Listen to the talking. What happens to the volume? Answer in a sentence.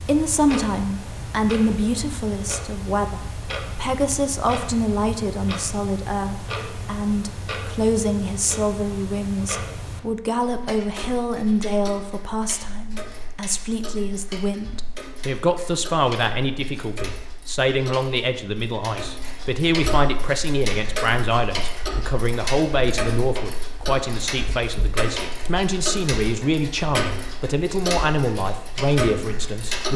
The loudness of the talking stays about the same.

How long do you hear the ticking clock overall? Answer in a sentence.
The ticking clock can be heard for 30 seconds in total.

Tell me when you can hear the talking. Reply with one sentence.
The talking can be heard from 0.0 to 29.9 s.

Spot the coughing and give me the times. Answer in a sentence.
You can't hear the coughing here.